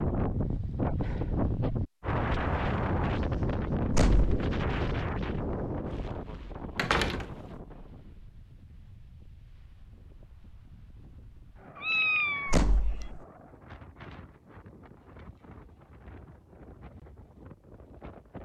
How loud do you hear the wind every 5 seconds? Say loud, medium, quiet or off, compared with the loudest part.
loud, medium, quiet, quiet.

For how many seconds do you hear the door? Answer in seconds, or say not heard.
2 s.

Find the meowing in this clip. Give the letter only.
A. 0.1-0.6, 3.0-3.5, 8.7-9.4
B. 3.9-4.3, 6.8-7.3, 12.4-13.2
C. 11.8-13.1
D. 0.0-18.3
C.